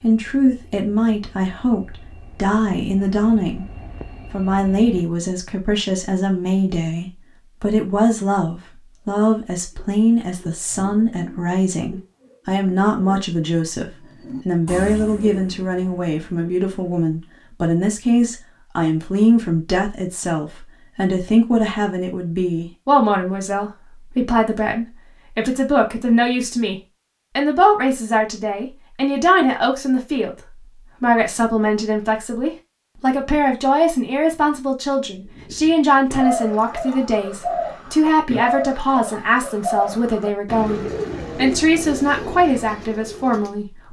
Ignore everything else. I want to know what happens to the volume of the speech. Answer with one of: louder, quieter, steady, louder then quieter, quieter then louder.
steady.